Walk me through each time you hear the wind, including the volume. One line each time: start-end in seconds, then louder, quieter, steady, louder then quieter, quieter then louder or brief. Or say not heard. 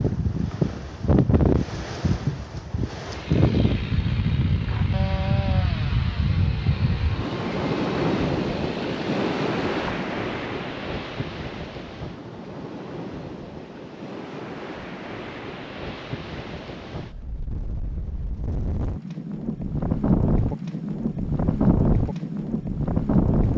0.0-23.5 quieter then louder.